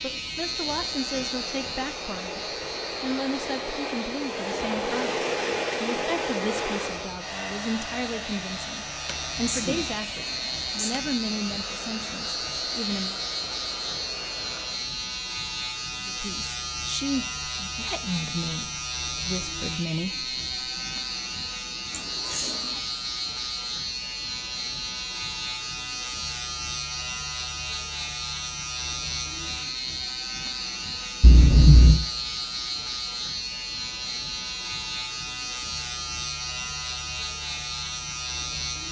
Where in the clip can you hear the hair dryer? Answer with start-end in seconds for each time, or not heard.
0.0-14.9.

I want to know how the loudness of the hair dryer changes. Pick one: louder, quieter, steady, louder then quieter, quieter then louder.
louder then quieter.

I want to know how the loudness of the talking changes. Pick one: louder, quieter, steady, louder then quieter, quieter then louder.
steady.